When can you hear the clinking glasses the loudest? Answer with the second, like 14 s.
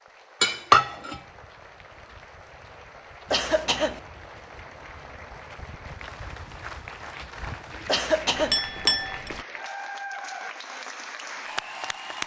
1 s.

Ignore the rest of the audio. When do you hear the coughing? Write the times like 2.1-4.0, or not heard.
3.3-4.0, 7.8-8.6.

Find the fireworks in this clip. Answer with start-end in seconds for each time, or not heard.
not heard.